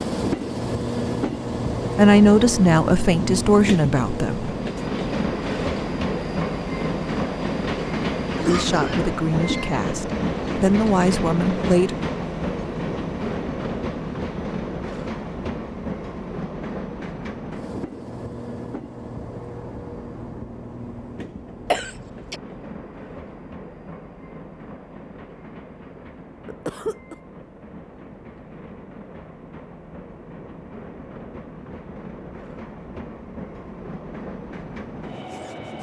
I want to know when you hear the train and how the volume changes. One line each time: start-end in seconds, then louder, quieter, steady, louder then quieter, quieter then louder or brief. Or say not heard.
0.0-35.7 quieter.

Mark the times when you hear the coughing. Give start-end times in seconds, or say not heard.
8.3-9.8, 21.6-22.4, 26.4-27.1.